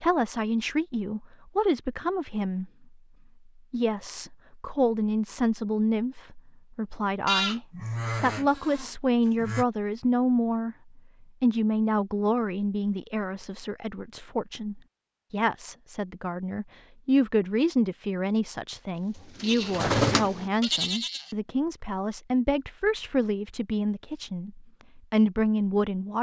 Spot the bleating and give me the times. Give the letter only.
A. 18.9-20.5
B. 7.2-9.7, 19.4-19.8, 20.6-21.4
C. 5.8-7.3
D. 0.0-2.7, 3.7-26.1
B.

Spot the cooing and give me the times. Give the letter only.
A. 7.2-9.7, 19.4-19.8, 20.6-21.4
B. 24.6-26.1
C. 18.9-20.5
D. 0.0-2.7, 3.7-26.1
C.